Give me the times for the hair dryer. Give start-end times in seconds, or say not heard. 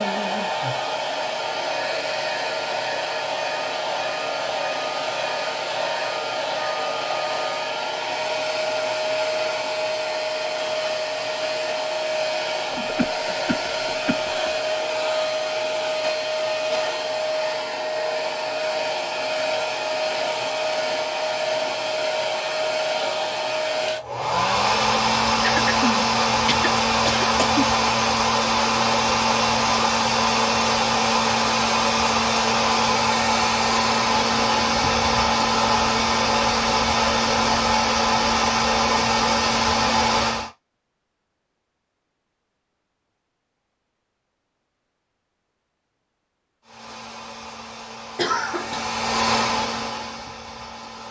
0.0-40.5, 46.6-51.0.